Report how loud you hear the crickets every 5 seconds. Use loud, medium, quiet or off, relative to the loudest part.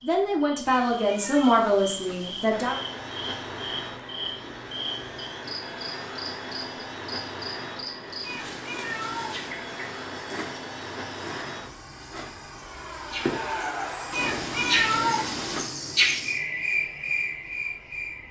medium, medium, medium, loud.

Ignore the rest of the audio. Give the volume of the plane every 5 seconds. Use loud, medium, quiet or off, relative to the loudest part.
loud, loud, loud, quiet.